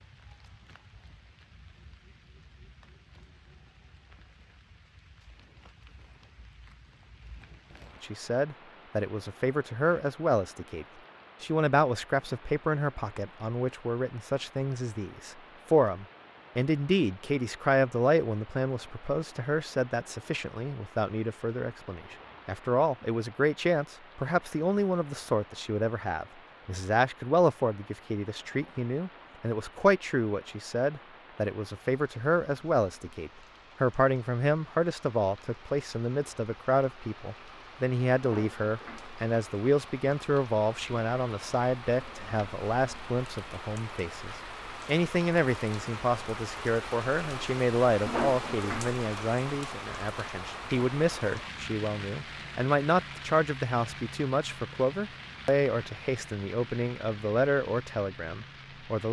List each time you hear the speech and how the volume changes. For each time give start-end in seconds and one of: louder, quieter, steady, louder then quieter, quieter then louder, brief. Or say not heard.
8.0-59.0 steady.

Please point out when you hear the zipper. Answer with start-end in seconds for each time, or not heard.
not heard.